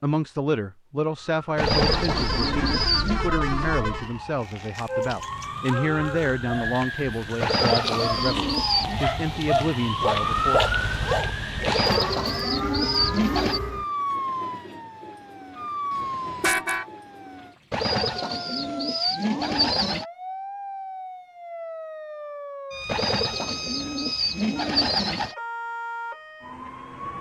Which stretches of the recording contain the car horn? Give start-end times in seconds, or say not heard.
1.7-4.1, 15.9-16.9.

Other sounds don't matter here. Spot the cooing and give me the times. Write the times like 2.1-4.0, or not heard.
1.6-3.2, 7.4-9.0, 11.7-13.6, 17.7-20.1, 22.9-25.4.